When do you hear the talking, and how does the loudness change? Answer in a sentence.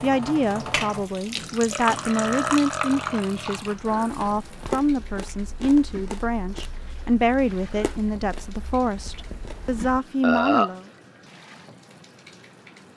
You can hear the talking from 0.0 to 10.8 s, at a steady volume.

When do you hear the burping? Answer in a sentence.
You can hear the burping from 1.7 to 3.6 s and from 10.2 to 10.7 s.